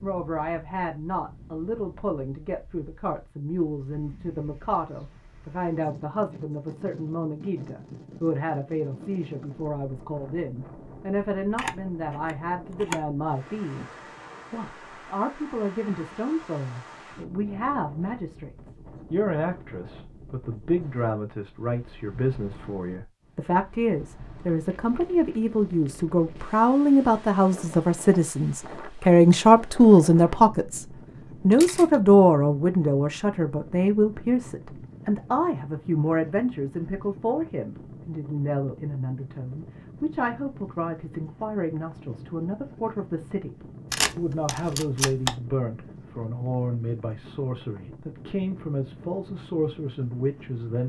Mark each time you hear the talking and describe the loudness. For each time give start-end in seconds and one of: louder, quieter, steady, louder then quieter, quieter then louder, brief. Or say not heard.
0.0-13.8 steady
14.5-50.8 louder then quieter.